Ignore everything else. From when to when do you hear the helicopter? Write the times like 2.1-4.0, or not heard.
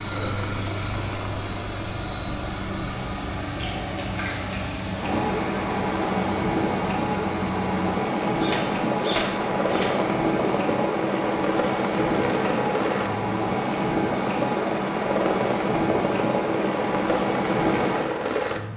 0.0-18.7.